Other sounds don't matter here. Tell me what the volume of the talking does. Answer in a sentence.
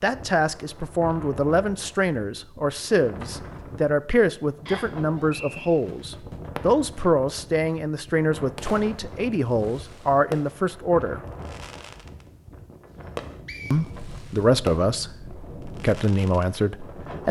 The loudness of the talking stays about the same.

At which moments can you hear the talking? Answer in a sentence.
The talking can be heard from 0.0 to 11.2 s and from 13.7 to 17.2 s.